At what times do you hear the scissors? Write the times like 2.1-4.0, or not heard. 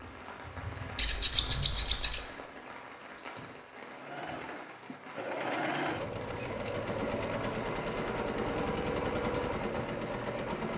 0.9-2.2, 6.0-7.5.